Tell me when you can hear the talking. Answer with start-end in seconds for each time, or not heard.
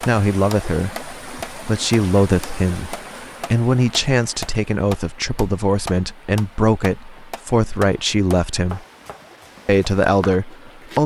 0.0-8.8, 9.7-11.0.